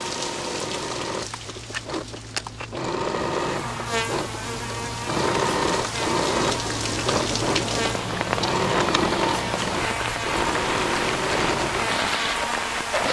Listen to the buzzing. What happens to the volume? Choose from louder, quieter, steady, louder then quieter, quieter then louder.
steady.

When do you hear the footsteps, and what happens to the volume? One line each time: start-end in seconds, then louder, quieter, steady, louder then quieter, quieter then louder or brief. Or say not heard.
not heard.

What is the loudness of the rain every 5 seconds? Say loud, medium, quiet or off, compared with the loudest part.
medium, loud, loud.